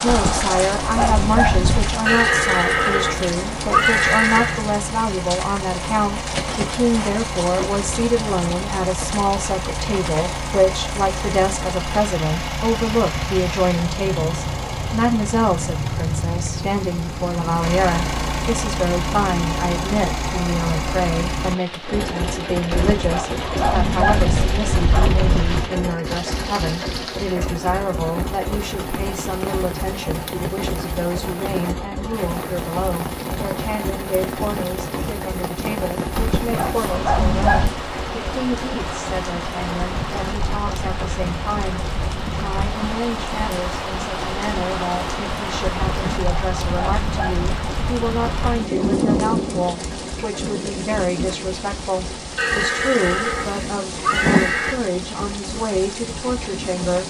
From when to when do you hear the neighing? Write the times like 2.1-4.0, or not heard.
2.0-4.6, 52.4-54.8.